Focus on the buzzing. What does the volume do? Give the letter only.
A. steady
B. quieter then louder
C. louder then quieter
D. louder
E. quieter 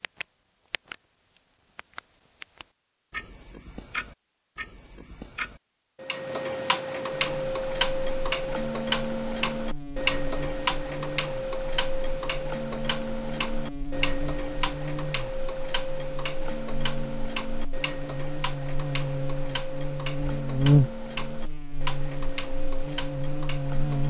D.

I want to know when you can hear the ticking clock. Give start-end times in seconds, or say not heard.
0.0-24.0.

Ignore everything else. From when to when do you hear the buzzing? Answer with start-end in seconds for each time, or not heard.
7.1-24.0.